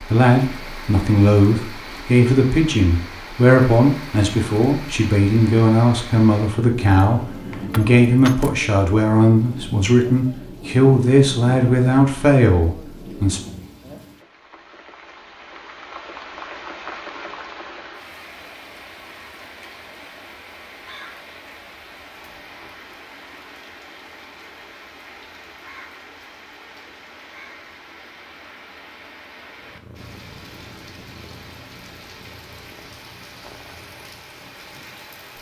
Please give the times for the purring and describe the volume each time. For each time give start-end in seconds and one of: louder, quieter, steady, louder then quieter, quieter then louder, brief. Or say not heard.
29.6-35.3 quieter.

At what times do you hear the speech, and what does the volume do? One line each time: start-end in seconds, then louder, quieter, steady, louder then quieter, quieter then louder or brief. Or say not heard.
0.0-13.4 steady.